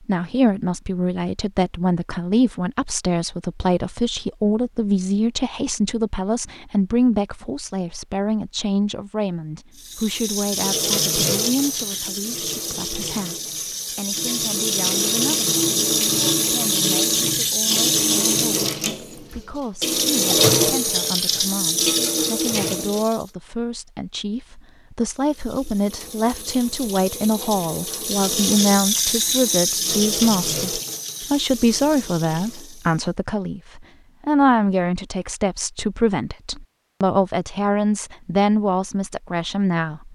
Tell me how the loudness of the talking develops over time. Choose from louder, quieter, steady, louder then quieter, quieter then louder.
quieter then louder.